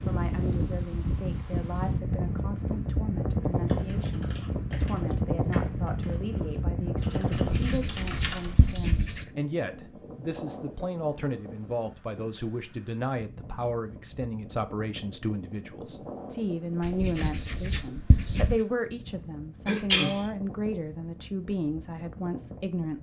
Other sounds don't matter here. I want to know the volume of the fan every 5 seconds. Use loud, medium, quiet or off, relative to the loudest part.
loud, loud, quiet, quiet, quiet.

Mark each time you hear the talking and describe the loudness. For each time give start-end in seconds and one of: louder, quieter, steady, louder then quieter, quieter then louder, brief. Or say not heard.
0.0-22.9 louder.